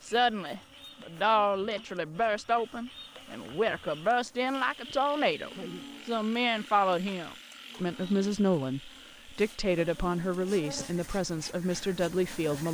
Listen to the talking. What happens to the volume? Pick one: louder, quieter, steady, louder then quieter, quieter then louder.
steady.